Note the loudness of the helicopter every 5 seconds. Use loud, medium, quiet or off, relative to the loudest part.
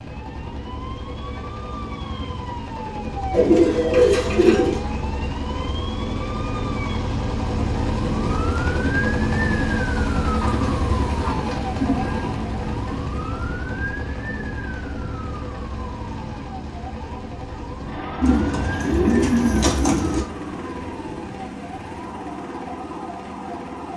medium, loud, loud, medium, medium.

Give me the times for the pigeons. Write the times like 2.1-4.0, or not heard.
3.3-4.8, 10.4-12.3, 18.2-20.2.